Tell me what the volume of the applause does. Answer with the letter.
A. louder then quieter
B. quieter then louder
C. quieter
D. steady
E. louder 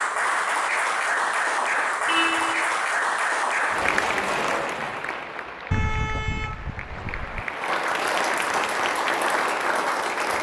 B.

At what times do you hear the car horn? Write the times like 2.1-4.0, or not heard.
2.0-2.8, 5.7-7.5.